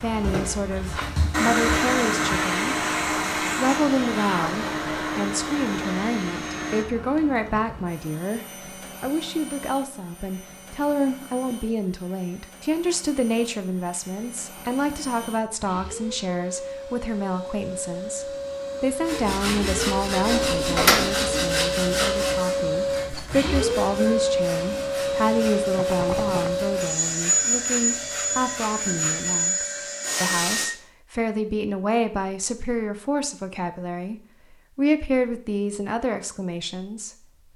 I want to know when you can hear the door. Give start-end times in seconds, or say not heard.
20.2-21.1.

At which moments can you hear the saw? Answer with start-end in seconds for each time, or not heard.
19.1-29.5.